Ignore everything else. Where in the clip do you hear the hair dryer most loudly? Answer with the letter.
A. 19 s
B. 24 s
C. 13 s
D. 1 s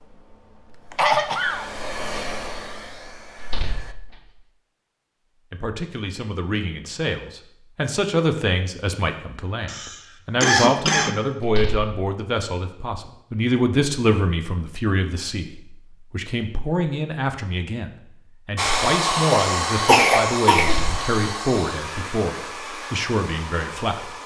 A.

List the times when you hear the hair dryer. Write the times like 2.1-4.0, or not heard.
0.0-4.0, 18.6-24.2.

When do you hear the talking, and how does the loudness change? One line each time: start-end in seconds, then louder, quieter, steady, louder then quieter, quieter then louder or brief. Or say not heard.
5.5-24.1 steady.